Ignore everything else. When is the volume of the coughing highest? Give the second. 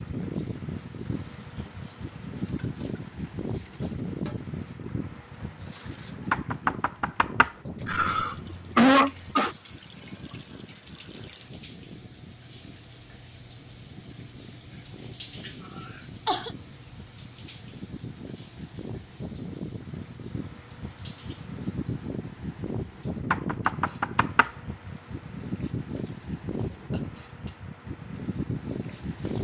9 s.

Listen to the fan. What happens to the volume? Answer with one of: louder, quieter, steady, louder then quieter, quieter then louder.
quieter then louder.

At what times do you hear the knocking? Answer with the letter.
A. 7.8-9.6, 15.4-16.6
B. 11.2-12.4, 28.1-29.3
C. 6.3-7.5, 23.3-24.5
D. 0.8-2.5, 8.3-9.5
C.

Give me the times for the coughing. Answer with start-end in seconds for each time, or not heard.
7.8-9.6, 15.4-16.6.